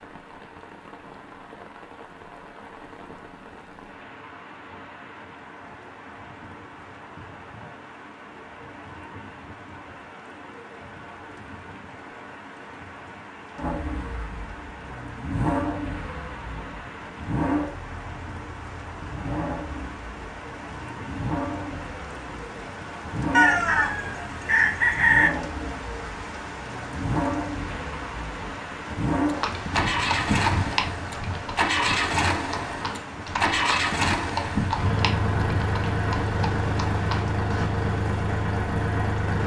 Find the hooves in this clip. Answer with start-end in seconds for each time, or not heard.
29.3-37.7.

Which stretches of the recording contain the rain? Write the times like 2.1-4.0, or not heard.
0.0-39.4.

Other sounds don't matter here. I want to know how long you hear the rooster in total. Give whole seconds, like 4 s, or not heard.
2 s.